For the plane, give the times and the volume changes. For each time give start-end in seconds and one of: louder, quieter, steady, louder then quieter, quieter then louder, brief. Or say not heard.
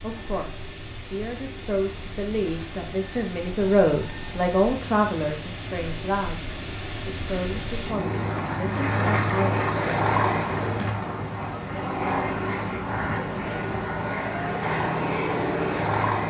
0.0-16.2 louder.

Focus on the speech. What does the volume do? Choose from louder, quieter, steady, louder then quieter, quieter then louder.
louder then quieter.